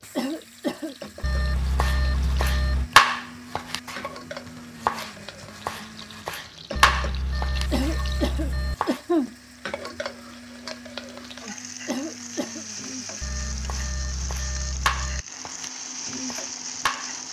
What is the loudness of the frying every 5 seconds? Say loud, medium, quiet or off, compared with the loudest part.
medium, medium, loud, loud.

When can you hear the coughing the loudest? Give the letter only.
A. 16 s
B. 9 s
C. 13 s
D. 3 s
B.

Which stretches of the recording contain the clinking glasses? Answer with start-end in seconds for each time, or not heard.
not heard.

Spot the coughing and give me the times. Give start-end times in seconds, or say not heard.
0.1-0.9, 7.7-9.3, 11.8-12.7.